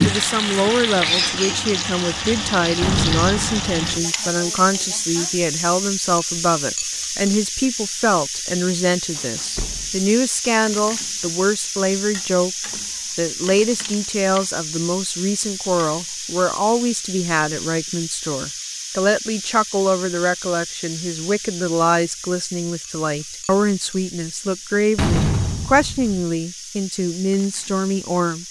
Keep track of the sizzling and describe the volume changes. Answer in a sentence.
The loudness of the sizzling goes down.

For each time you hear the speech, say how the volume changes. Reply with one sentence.
The speech can be heard from 0.0 to 28.4 s, at a steady volume.